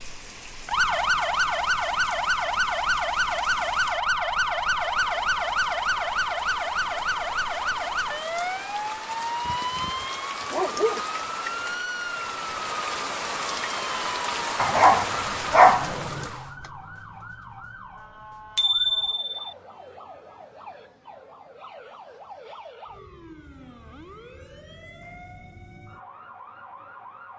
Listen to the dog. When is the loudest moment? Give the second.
16 s.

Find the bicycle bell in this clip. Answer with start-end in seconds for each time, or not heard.
18.6-19.5.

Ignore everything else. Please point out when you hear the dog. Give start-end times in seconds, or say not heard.
9.4-11.0, 14.6-16.2.